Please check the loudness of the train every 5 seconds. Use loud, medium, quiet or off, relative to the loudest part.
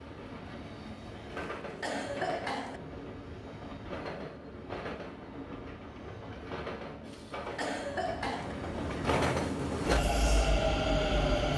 quiet, medium, loud.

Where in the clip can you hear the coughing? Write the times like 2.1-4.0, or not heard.
1.3-2.8, 7.0-8.6.